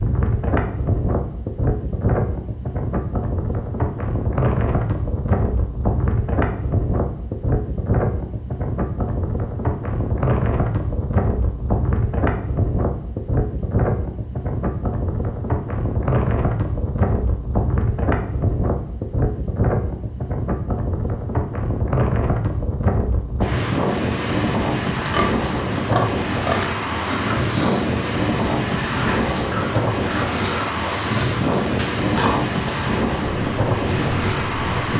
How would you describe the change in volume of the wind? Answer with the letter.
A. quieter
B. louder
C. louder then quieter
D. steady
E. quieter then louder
D.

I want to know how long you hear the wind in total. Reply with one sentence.
The wind can be heard for 35 seconds in total.